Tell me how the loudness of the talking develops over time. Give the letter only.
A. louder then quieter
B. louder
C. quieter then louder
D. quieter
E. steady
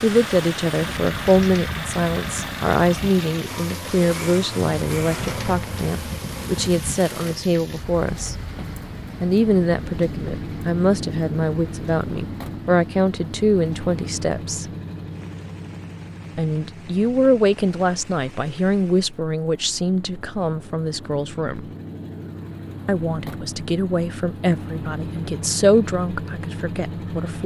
E.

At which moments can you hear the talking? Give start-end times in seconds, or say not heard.
0.0-8.3, 9.2-14.7, 16.4-21.6, 22.9-27.4.